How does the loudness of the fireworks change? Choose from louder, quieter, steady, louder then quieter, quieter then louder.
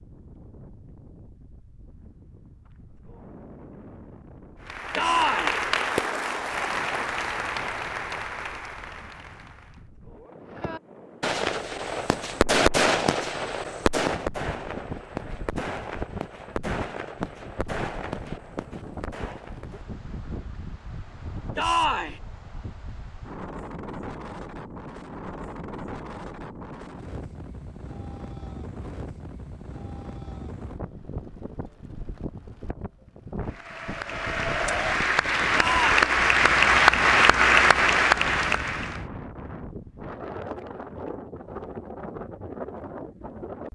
quieter.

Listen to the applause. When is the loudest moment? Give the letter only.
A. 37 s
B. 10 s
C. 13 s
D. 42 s
A.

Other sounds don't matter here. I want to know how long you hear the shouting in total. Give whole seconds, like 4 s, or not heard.
2 s.